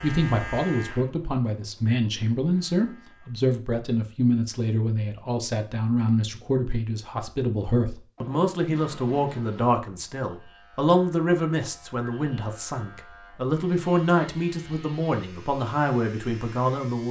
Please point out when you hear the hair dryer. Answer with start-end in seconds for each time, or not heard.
not heard.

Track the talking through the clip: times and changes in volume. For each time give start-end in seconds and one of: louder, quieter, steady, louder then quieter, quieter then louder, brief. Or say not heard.
0.0-17.0 steady.